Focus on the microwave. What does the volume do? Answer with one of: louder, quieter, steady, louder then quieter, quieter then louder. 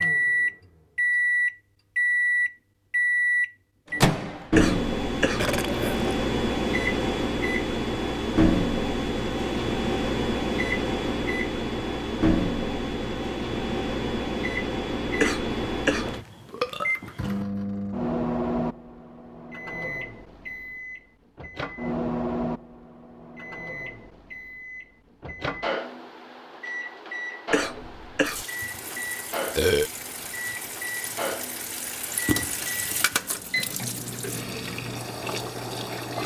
quieter.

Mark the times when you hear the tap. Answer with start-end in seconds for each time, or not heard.
28.2-36.2.